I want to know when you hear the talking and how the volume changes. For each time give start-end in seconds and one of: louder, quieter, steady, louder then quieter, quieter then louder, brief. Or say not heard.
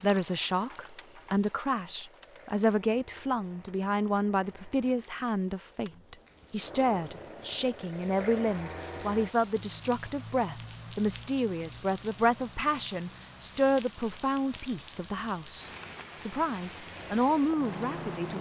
0.0-18.3 steady.